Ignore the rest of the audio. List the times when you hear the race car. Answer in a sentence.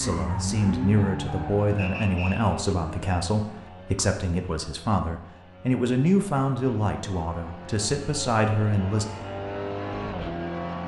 The race car can be heard from 0.0 to 10.8 s.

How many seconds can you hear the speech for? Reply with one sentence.
You can hear the speech for 9 seconds altogether.